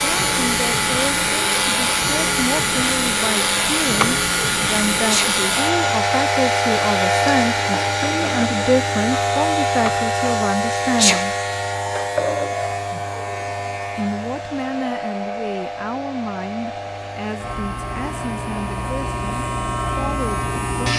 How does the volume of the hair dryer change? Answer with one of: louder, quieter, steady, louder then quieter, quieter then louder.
quieter.